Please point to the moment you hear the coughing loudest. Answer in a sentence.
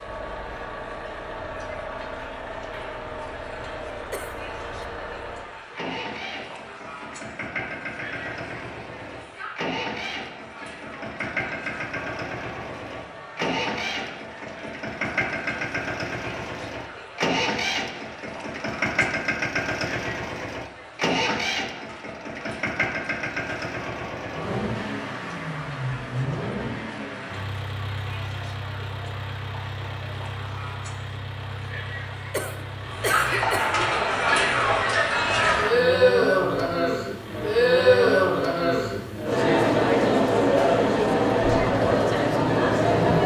The loudest moment of the coughing is at 33 seconds.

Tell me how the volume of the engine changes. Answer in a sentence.
The volume of the engine goes up, then down.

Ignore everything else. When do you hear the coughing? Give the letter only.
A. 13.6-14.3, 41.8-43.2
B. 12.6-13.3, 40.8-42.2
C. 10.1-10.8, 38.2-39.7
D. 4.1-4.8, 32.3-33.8
D.